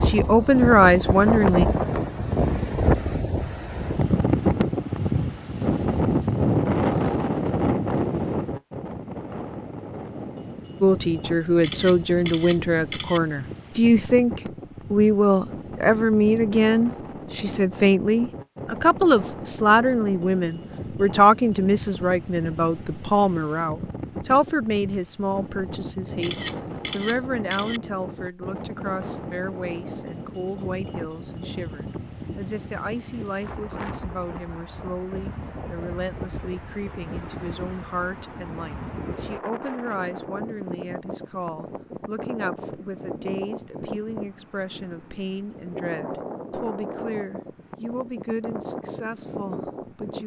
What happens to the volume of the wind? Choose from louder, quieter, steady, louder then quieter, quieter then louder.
quieter.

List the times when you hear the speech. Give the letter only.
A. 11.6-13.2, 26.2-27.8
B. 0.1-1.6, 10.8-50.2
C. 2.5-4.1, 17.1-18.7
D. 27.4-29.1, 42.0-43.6
B.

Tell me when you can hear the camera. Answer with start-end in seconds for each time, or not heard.
11.6-13.2, 26.2-27.8.